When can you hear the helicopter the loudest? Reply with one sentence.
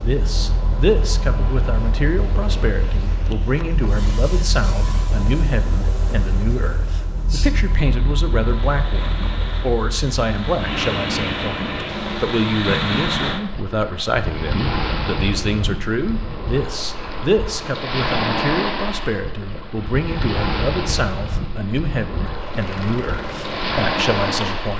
The volume of the helicopter peaks at 11 seconds.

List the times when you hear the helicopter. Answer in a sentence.
You can hear the helicopter from 0.0 to 12.4 s and from 22.3 to 24.7 s.